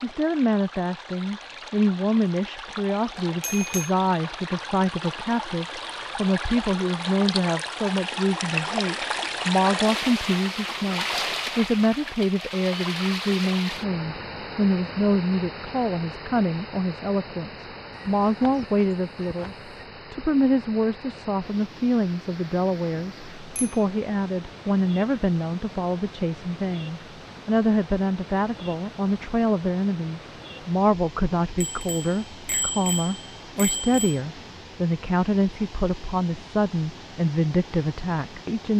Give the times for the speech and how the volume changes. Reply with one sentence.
You can hear the speech from 0.0 to 38.7 s, at a steady volume.